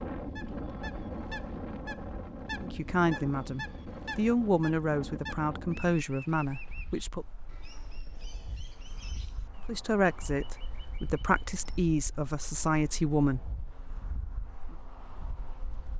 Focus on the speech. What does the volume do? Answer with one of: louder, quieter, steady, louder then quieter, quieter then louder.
steady.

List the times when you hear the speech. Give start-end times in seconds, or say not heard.
2.6-7.2, 9.7-13.4.